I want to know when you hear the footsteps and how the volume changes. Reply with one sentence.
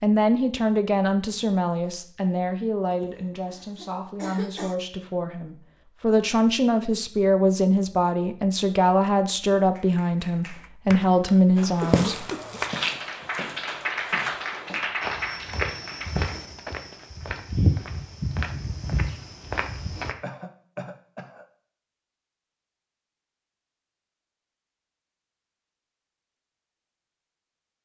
You can hear the footsteps from 11.6 to 20.1 s, getting quieter then louder.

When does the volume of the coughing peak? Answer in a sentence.
The volume of the coughing peaks at 12 seconds.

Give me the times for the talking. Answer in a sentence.
The talking can be heard from 0.0 to 12.3 s.